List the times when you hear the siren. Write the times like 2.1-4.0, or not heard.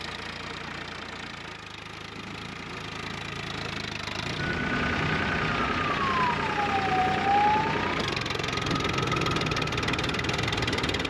4.3-11.0.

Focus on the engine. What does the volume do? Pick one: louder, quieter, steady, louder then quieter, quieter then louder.
louder.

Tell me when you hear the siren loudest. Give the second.
7 s.